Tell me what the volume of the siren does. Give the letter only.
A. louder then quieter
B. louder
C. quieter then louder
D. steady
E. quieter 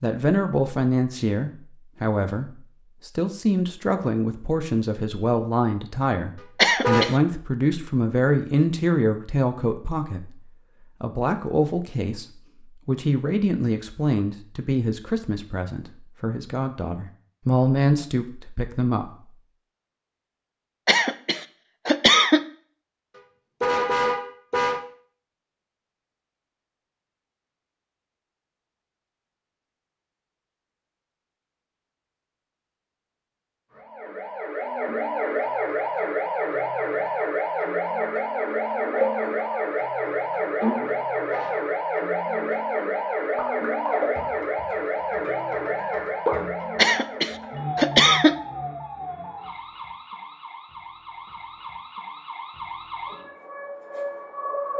E.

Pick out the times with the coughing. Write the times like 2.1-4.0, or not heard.
6.5-7.2, 20.9-22.4, 46.8-48.4.